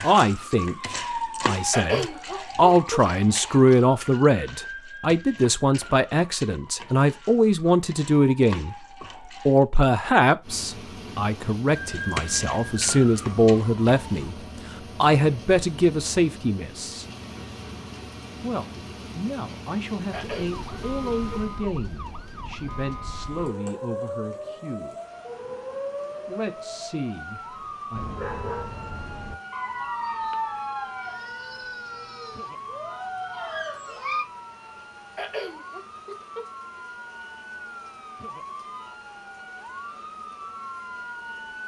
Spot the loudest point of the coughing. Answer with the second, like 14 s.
2 s.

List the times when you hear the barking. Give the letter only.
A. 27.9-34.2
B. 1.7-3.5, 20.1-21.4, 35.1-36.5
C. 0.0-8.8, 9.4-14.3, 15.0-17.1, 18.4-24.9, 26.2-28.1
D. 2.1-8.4
A.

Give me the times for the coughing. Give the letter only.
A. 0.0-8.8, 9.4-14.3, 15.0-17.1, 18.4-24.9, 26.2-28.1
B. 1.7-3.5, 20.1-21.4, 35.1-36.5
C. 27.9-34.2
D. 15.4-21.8
B.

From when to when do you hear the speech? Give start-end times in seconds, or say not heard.
0.0-8.8, 9.4-14.3, 15.0-17.1, 18.4-24.9, 26.2-28.1.